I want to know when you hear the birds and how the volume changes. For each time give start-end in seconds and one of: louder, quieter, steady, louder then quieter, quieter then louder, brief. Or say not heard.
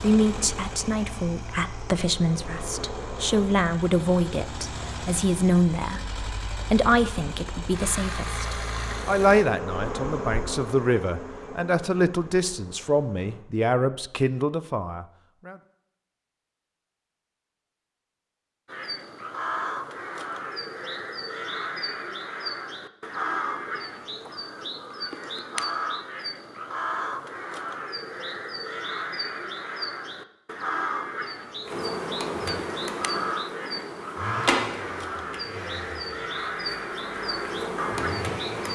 18.6-38.7 steady.